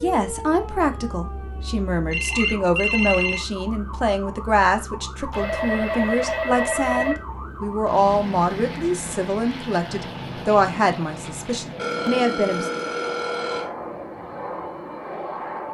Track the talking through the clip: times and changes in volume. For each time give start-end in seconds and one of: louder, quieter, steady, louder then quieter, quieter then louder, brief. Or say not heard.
0.0-12.7 steady.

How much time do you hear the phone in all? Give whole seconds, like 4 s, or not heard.
5 s.